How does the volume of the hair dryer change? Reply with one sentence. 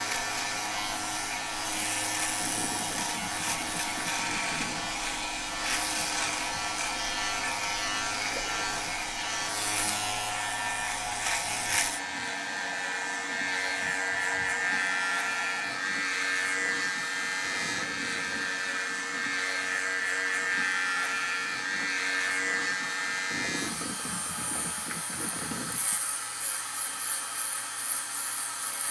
The loudness of the hair dryer stays about the same.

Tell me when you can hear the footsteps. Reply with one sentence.
The footsteps can't be heard in this clip.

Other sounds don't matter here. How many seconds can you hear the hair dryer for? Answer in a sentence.
The hair dryer can be heard for 29 seconds in total.